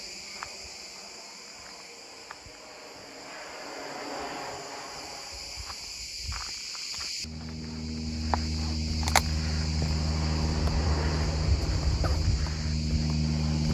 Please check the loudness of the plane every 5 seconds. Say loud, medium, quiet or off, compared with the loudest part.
loud, medium, loud.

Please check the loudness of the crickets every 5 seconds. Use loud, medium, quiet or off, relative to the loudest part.
quiet, loud, loud.